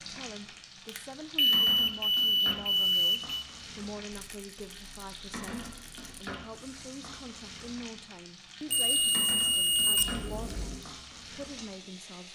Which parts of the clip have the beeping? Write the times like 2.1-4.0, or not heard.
0.8-3.5, 8.7-10.8.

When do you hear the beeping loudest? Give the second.
2 s.